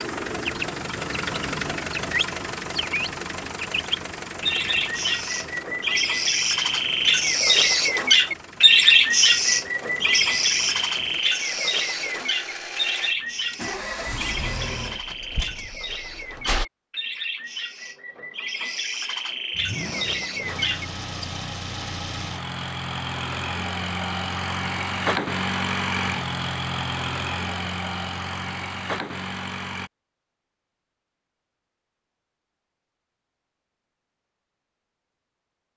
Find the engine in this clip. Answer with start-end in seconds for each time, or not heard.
0.0-16.6, 19.5-29.9.